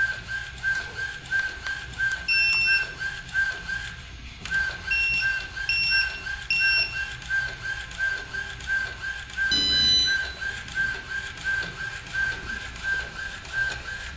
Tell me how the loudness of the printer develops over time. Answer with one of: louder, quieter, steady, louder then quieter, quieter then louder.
steady.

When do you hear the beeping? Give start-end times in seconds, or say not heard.
0.8-2.9, 4.9-6.9, 9.5-10.2.